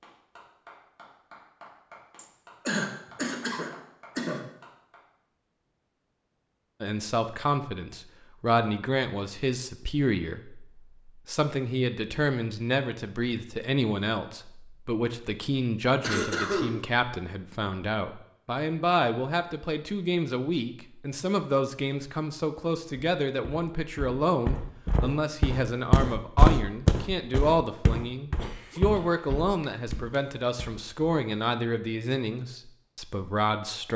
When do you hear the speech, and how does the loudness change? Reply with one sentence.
The speech can be heard from 6.8 to 33.9 s, at a steady volume.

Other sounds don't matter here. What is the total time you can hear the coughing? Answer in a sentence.
You can hear the coughing for 5 seconds altogether.